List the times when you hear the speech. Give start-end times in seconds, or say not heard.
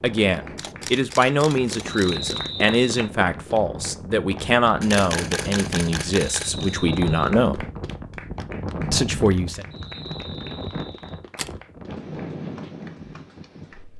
0.0-7.7, 8.9-9.7.